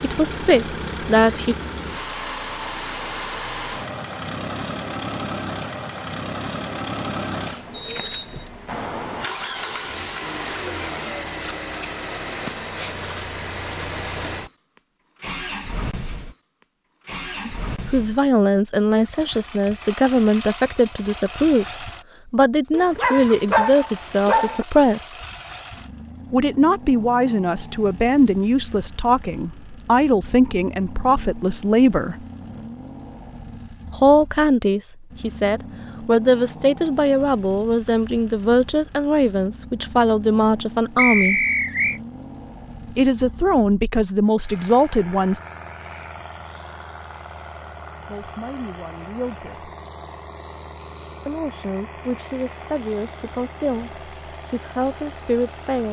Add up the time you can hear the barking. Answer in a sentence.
You can hear the barking for 2 seconds altogether.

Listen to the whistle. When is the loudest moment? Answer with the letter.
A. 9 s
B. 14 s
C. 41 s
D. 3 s
C.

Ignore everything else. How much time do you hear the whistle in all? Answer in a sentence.
The whistle can be heard for 2 seconds in total.